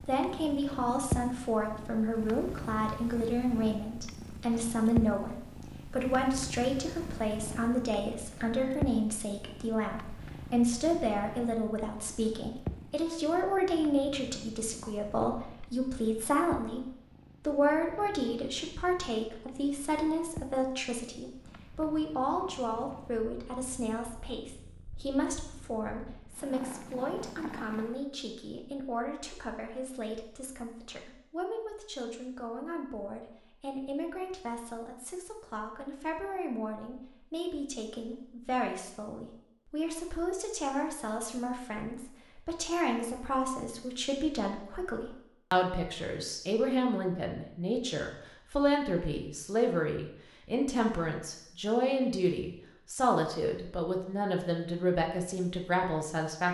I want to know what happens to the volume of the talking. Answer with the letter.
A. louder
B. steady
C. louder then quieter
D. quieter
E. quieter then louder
E.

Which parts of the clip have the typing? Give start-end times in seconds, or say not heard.
not heard.